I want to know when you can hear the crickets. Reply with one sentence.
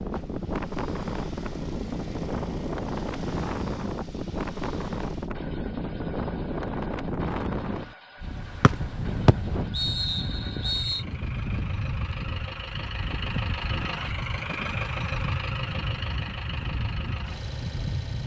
You can't hear the crickets here.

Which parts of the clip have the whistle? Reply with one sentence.
You can hear the whistle from 8.6 to 11.1 s.